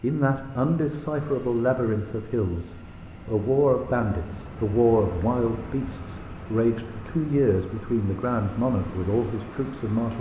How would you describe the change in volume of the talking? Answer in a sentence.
The volume of the talking stays about the same.